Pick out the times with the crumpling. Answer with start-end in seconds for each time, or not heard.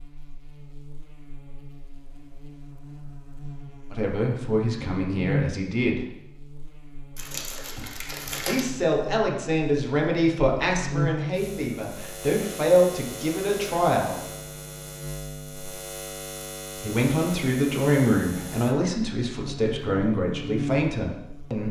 7.2-8.7.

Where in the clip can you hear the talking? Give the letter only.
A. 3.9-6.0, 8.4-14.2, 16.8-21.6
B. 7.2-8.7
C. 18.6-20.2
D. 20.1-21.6
A.